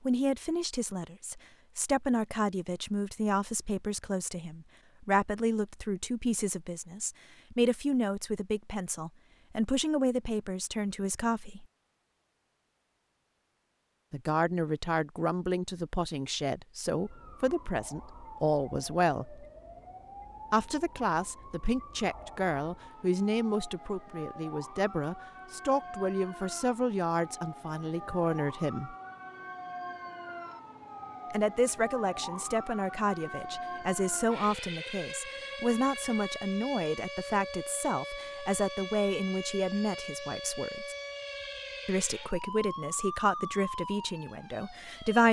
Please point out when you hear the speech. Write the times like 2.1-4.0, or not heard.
0.0-11.7, 14.1-19.4, 20.5-28.9, 31.3-41.0, 41.9-45.2.